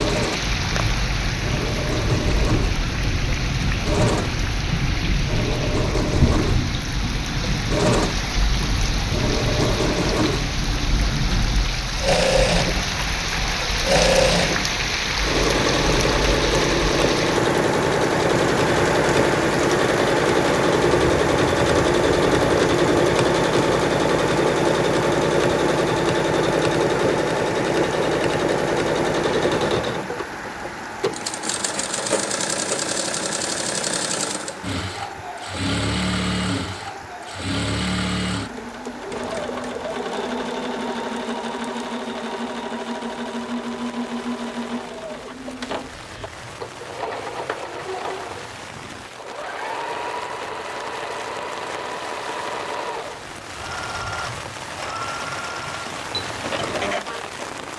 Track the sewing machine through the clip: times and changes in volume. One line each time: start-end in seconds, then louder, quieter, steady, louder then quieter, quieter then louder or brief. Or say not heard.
0.0-57.6 louder then quieter.